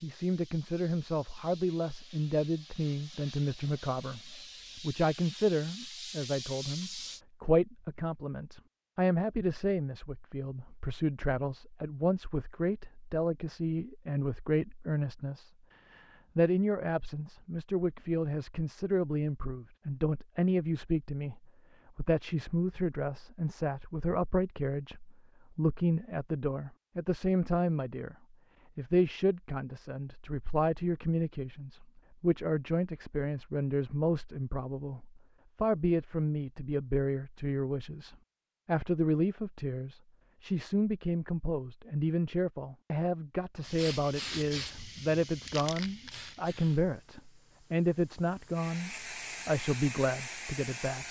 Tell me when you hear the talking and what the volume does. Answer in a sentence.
You can hear the talking from 0.0 to 51.0 s, at a steady volume.